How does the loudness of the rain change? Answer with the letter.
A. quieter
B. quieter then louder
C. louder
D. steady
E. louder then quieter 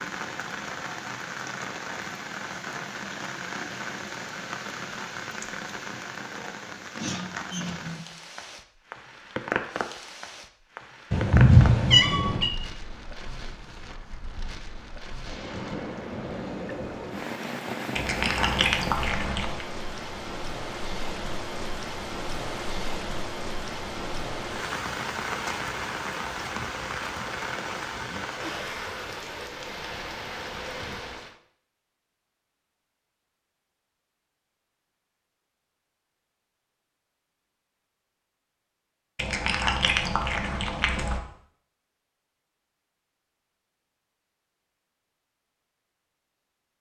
D.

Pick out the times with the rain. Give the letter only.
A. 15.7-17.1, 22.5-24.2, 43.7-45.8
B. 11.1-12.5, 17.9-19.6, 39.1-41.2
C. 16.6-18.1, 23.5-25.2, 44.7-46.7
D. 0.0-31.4
D.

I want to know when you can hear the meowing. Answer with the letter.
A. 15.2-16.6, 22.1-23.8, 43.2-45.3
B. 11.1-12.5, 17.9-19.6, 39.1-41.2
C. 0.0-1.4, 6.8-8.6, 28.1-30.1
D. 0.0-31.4
B.